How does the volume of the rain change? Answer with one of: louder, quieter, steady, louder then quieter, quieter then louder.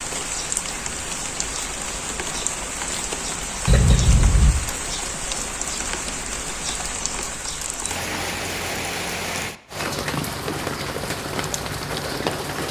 steady.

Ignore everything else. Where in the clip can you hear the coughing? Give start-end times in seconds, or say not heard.
3.6-4.5.